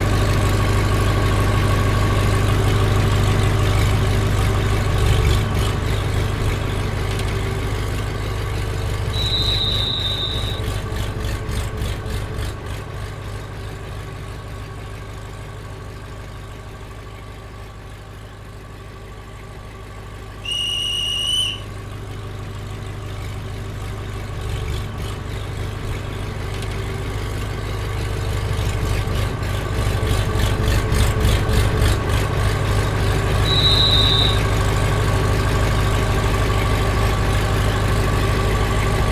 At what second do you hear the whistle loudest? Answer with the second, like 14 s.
34 s.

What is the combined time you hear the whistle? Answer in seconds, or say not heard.
4 s.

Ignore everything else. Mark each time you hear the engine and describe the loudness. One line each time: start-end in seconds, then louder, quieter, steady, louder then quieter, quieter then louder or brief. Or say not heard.
0.0-39.0 quieter then louder.